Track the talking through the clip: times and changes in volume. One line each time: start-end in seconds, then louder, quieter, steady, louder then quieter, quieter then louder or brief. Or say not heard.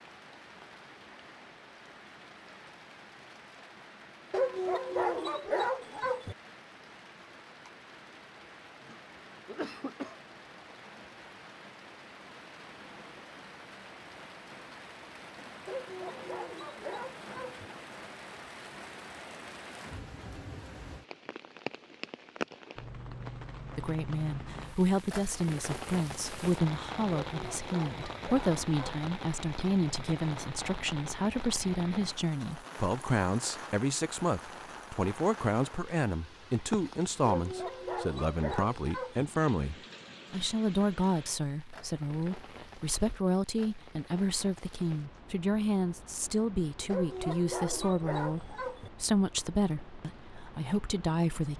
23.8-51.5 steady.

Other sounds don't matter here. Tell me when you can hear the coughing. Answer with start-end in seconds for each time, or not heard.
8.8-10.2.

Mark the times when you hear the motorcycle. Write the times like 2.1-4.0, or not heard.
not heard.